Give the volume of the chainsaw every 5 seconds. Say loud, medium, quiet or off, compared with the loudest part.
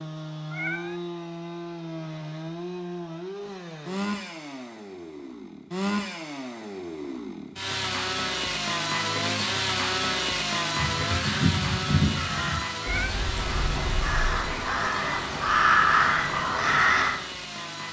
medium, loud, loud, medium.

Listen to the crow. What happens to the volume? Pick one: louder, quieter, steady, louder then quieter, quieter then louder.
quieter then louder.